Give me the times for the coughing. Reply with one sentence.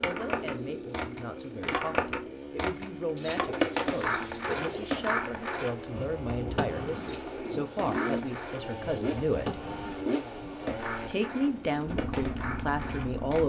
You can't hear the coughing here.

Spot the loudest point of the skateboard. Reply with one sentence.
The loudest moment of the skateboard is at 4 seconds.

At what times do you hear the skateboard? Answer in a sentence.
You can hear the skateboard from 0.0 to 13.4 s.